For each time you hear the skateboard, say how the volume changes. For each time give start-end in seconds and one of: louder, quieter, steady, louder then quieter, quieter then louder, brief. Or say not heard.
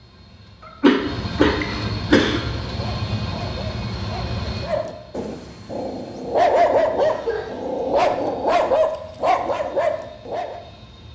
not heard.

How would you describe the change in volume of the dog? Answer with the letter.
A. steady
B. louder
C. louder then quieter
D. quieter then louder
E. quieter
B.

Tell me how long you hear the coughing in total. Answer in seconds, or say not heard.
3 s.